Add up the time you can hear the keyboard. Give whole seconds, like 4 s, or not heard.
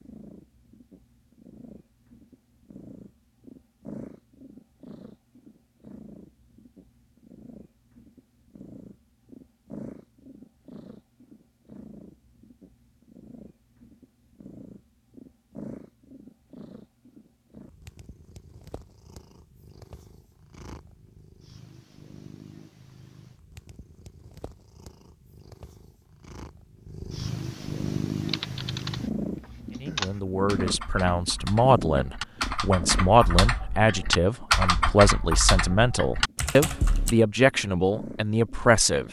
9 s.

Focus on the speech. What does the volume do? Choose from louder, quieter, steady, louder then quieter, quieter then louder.
steady.